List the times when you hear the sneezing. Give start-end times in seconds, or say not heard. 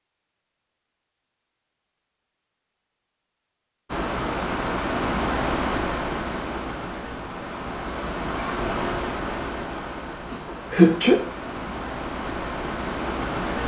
10.3-11.2.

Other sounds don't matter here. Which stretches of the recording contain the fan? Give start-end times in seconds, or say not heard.
3.9-13.6.